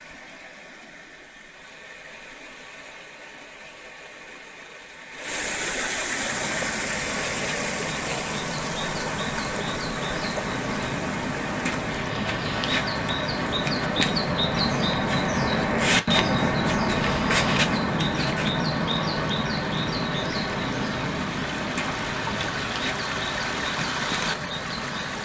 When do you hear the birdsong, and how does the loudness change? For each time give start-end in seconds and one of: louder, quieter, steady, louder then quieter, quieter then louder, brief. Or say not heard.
6.0-25.2 louder then quieter.